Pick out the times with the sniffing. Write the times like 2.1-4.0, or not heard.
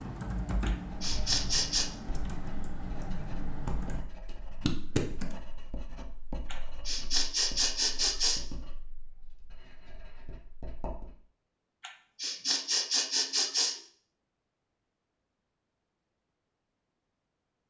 0.7-1.9, 6.5-8.4, 11.8-13.8.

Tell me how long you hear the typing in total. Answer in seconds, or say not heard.
5 s.